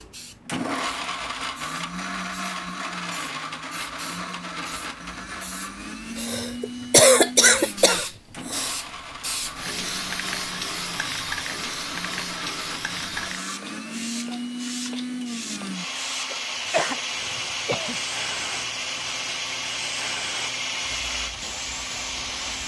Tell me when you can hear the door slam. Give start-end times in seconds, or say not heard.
not heard.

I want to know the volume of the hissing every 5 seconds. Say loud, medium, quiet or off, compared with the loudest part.
medium, loud, loud, medium, medium.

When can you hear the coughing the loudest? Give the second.
7 s.